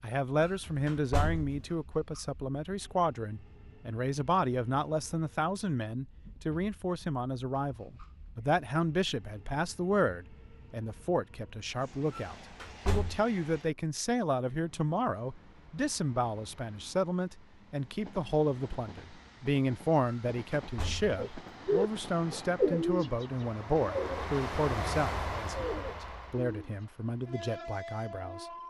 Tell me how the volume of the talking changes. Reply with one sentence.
The volume of the talking stays about the same.